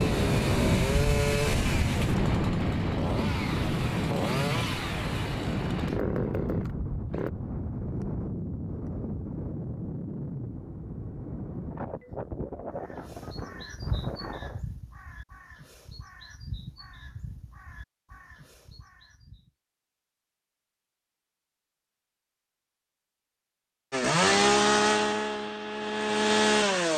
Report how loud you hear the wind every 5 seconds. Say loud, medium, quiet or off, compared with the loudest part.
loud, medium, medium, off, off, off.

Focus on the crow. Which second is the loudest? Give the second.
14 s.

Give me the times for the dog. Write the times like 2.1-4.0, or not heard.
not heard.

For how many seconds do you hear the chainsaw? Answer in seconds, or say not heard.
10 s.